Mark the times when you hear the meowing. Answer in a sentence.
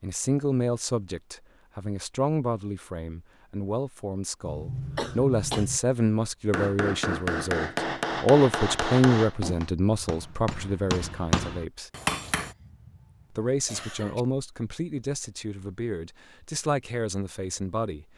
You can't hear the meowing here.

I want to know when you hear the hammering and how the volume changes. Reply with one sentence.
The hammering can be heard from 6.5 to 12.6 s, getting quieter then louder.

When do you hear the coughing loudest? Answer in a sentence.
The volume of the coughing peaks at 5 seconds.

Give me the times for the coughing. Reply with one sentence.
You can hear the coughing from 4.5 to 5.8 s and from 12.4 to 14.2 s.